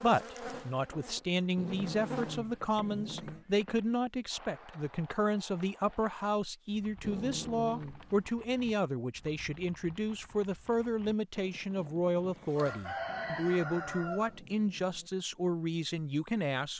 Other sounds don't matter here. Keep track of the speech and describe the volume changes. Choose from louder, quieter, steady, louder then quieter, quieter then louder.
steady.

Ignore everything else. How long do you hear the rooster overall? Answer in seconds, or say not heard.
2 s.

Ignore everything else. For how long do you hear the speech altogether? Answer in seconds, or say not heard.
17 s.